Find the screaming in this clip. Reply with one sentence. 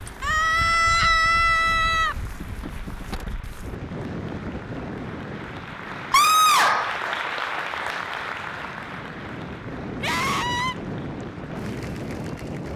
The screaming can be heard from 0.2 to 2.1 s, from 6.1 to 7.0 s and from 10.0 to 10.8 s.